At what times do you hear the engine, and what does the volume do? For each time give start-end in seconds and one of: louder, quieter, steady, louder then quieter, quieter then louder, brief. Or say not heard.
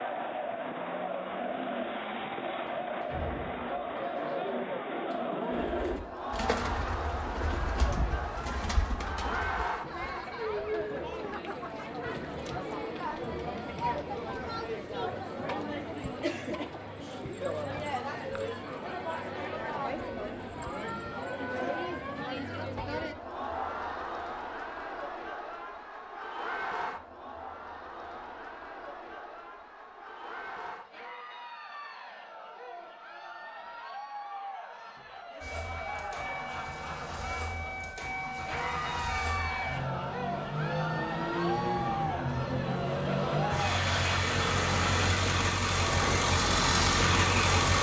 35.4-47.7 louder.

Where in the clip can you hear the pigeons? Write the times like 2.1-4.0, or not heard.
1.2-9.7.